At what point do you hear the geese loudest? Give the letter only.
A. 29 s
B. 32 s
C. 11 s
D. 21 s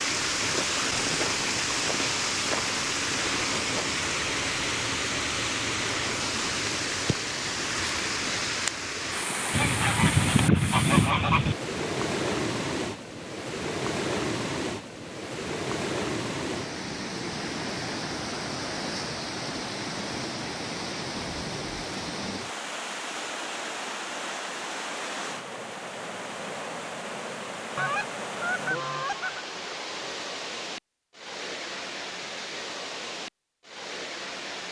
C.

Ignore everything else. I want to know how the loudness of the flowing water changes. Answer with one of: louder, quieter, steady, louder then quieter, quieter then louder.
quieter.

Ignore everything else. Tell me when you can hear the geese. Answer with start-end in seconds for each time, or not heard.
9.5-11.6, 27.8-29.4.